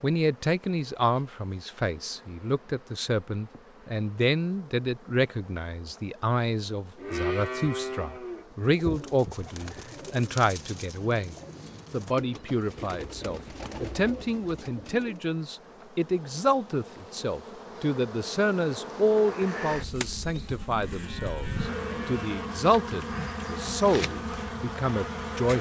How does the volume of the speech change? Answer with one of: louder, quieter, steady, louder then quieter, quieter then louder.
steady.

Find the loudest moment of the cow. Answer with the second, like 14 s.
7 s.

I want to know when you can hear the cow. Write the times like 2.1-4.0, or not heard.
7.0-8.6, 20.6-22.5.